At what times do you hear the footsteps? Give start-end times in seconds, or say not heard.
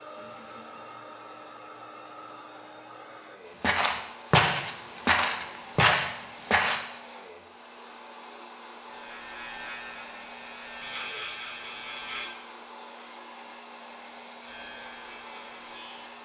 3.6-6.8.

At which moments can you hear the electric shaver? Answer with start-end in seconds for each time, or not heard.
8.8-12.3, 14.4-16.2.